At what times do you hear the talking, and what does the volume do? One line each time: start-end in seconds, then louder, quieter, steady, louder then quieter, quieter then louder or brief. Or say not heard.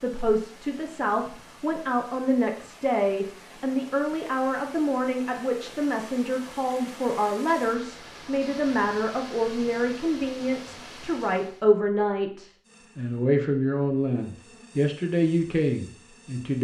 0.0-16.5 steady.